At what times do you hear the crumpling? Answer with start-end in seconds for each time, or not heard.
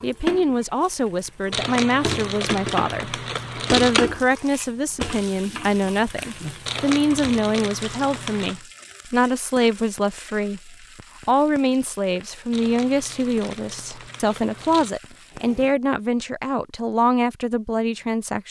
1.5-4.0, 6.7-8.6, 12.5-15.0.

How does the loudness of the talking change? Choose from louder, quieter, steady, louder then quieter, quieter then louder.
steady.